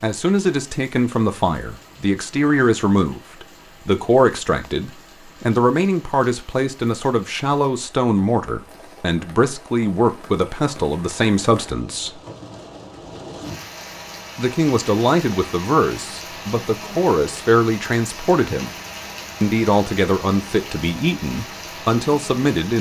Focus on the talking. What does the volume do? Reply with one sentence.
The volume of the talking stays about the same.